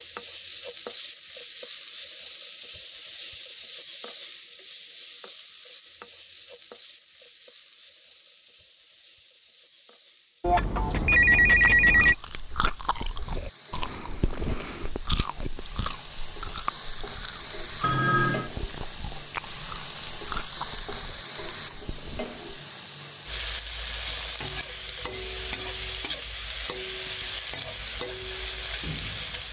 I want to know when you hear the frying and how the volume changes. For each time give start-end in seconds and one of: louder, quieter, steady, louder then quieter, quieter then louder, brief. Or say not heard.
0.0-29.4 quieter then louder.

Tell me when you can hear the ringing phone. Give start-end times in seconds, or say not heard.
10.4-12.2, 17.8-18.5.